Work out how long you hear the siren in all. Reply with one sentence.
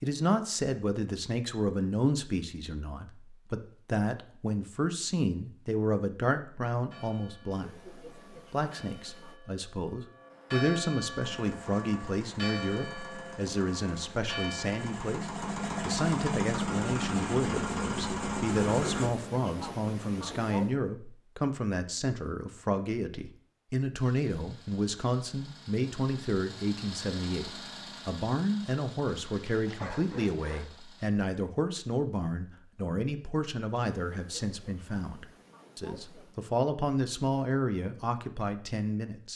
The siren can't be heard in this clip.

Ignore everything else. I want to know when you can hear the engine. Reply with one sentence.
The engine can be heard from 11.2 to 19.1 s and from 23.9 to 31.1 s.